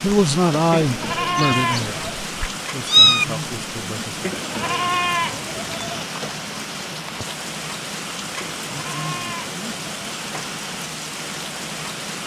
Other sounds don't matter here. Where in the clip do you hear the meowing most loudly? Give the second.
3 s.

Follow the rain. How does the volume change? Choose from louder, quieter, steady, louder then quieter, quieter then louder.
steady.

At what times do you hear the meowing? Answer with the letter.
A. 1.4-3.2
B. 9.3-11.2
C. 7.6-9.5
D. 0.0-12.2
A.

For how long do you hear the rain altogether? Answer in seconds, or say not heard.
12 s.